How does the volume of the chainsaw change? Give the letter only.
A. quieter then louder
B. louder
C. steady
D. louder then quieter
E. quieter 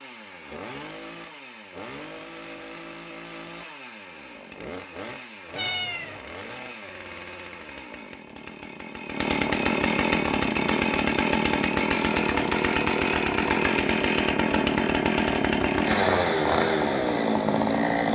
B.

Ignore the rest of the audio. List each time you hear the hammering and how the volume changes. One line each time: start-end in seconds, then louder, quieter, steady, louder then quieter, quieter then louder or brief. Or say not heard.
not heard.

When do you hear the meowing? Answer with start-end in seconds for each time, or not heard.
5.5-6.2.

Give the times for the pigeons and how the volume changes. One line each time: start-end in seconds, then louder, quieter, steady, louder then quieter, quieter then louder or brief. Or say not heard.
not heard.